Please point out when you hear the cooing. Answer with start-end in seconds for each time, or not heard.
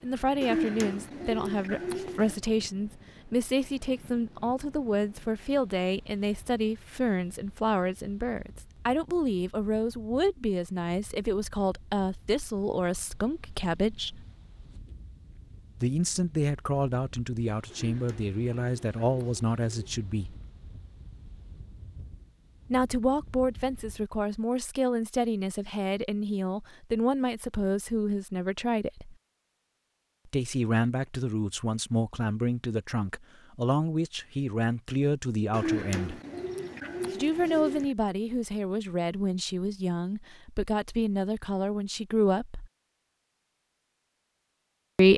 0.4-2.4, 17.7-19.9, 35.5-37.9.